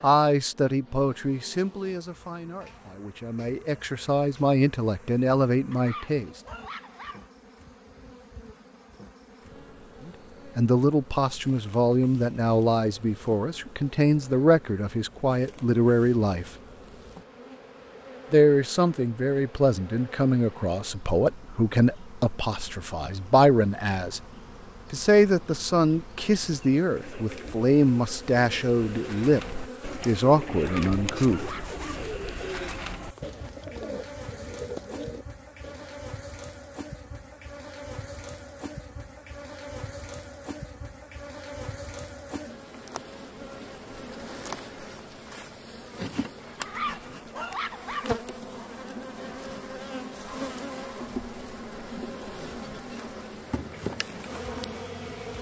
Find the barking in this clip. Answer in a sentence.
You can hear the barking from 5.7 to 7.2 s, from 30.5 to 32.0 s and from 46.6 to 48.1 s.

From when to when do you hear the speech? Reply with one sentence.
You can hear the speech from 0.0 to 6.3 s, from 10.1 to 16.4 s, from 18.3 to 24.2 s and from 24.9 to 31.6 s.